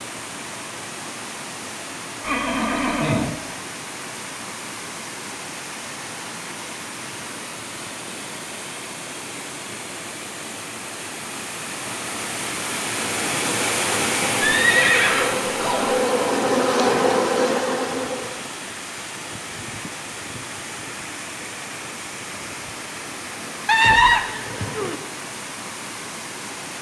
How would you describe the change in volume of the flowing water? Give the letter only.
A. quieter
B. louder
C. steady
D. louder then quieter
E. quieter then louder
D.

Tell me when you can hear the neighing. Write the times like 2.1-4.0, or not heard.
2.2-3.3, 14.4-16.1, 23.6-24.9.